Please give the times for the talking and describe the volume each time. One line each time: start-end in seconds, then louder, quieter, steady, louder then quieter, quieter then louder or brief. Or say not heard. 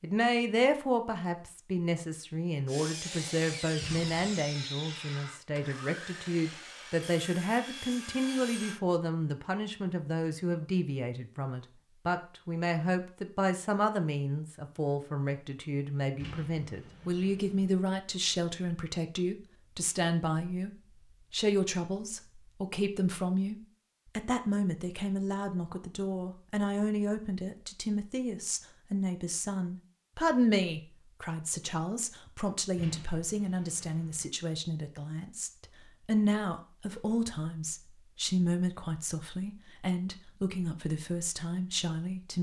0.0-42.3 steady.